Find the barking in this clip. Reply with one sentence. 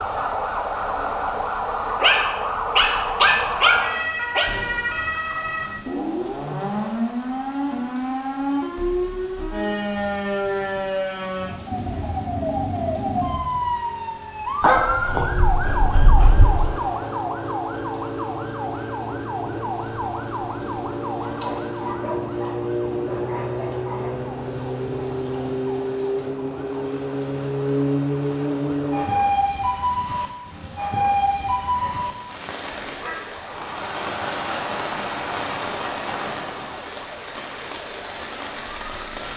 The barking can be heard from 2.0 to 4.5 s, from 14.6 to 16.8 s, from 21.2 to 24.1 s and from 31.8 to 33.2 s.